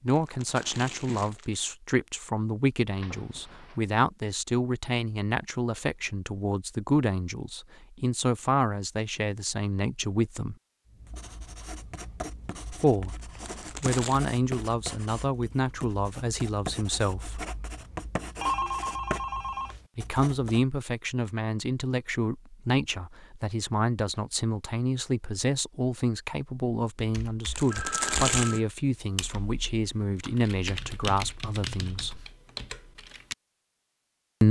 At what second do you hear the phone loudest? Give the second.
19 s.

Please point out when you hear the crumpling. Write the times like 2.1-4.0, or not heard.
0.1-1.6, 13.4-14.2, 27.6-28.6.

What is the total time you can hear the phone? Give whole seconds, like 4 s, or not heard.
3 s.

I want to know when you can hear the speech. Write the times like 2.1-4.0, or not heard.
0.0-10.6, 12.7-13.2, 13.8-17.4, 19.9-32.2.